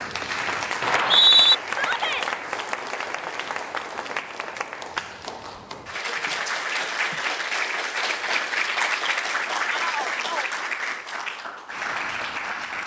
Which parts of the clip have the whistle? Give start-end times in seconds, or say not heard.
0.8-1.6.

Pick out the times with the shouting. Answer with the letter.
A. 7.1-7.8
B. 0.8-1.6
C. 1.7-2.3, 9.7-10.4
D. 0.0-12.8
C.